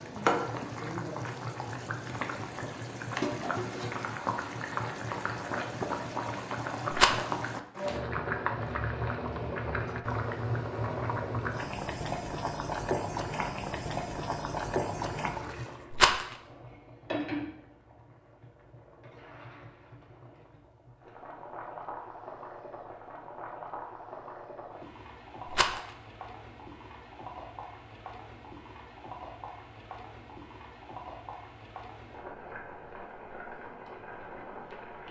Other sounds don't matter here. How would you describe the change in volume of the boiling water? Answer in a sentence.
The loudness of the boiling water goes down.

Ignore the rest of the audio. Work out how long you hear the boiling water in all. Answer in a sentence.
The boiling water can be heard for 35 seconds in total.